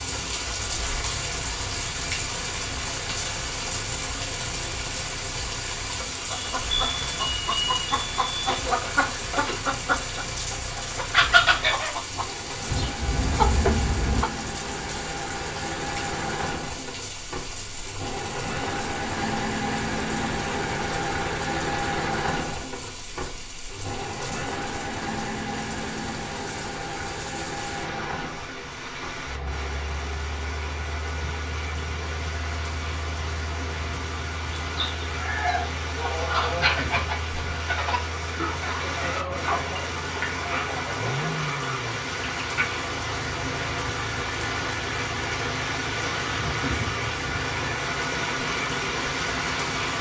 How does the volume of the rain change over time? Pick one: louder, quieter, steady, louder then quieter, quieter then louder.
quieter then louder.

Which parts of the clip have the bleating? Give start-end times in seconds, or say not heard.
not heard.